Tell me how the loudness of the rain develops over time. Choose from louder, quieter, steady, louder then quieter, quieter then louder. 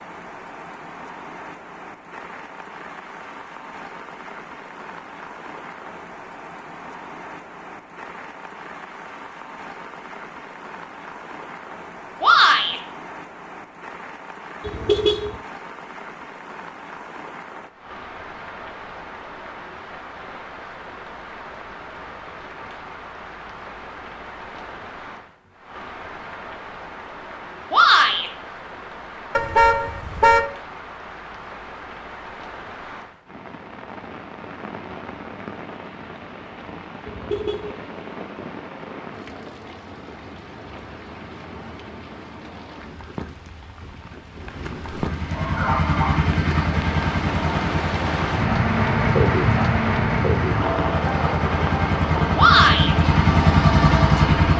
louder.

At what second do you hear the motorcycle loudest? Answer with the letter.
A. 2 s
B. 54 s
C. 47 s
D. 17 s
B.